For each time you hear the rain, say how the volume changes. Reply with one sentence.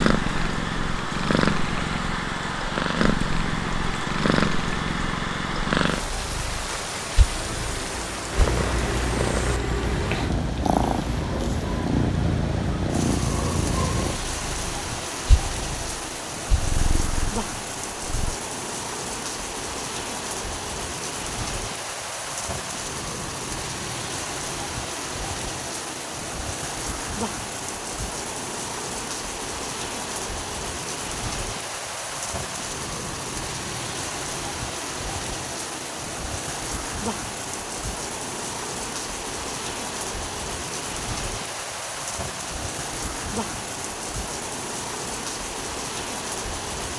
You can hear the rain from 0.0 to 46.9 s, at a steady volume.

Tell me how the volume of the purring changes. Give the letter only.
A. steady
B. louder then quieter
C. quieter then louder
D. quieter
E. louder
D.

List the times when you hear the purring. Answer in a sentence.
You can hear the purring from 0.0 to 18.4 s.